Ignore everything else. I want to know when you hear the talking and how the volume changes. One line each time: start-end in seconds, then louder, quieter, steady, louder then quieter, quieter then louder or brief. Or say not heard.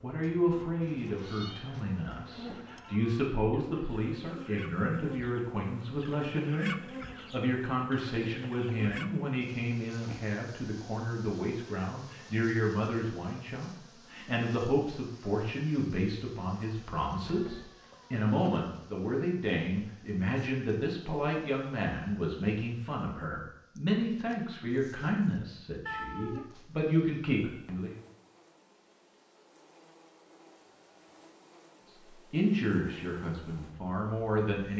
0.0-27.9 steady
32.3-34.7 brief.